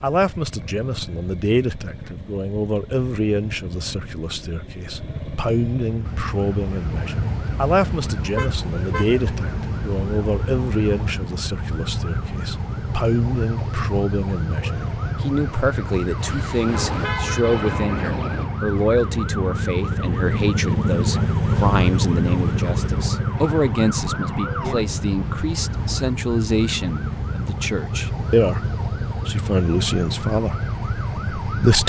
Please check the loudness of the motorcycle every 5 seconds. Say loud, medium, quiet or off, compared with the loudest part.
quiet, medium, medium, medium, loud, medium, medium.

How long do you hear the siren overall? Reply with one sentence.
You can hear the siren for 26 seconds altogether.